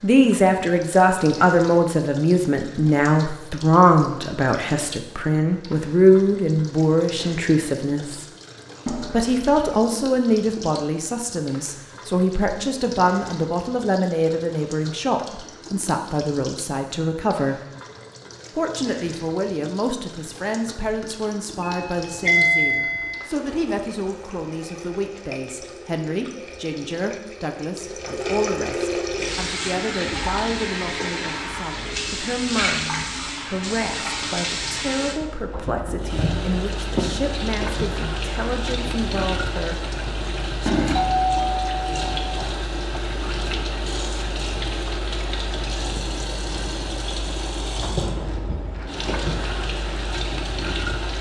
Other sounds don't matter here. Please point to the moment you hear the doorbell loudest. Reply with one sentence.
The volume of the doorbell peaks at 22 seconds.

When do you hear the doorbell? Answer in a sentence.
You can hear the doorbell from 8.8 to 9.8 s, from 21.6 to 23.3 s and from 41.1 to 42.5 s.